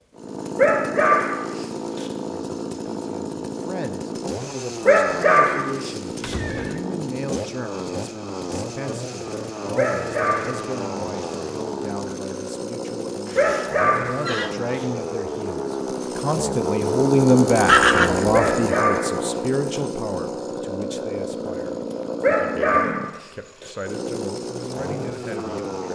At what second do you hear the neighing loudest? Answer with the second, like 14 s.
18 s.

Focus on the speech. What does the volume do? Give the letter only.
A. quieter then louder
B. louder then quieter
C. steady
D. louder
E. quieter
B.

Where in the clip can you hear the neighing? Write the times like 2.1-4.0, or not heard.
6.2-6.8, 13.2-14.6, 17.6-18.6.